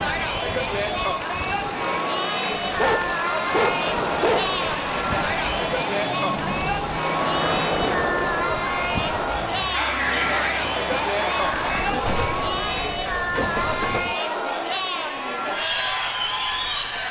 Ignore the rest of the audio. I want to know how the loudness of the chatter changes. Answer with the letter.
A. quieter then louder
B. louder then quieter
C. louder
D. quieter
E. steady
E.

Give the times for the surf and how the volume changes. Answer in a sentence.
The surf can be heard from 0.0 to 14.2 s, getting louder then quieter.